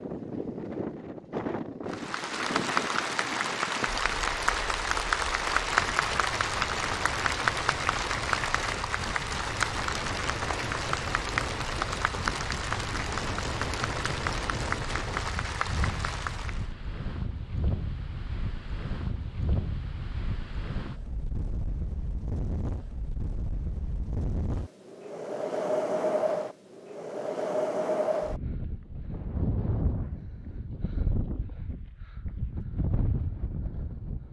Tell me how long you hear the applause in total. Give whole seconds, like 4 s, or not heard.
15 s.